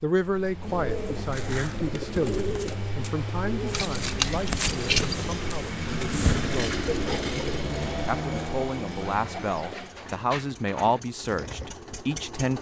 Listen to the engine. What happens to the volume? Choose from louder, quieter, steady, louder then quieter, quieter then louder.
louder then quieter.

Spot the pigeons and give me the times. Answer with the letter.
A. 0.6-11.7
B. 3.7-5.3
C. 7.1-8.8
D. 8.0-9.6
A.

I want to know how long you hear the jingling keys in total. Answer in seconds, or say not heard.
2 s.